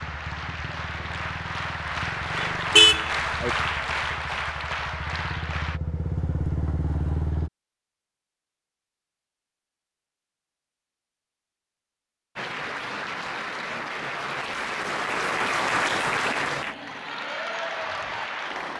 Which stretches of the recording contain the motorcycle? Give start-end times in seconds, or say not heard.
0.0-7.5.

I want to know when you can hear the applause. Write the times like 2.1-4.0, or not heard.
0.0-5.8, 12.3-18.7.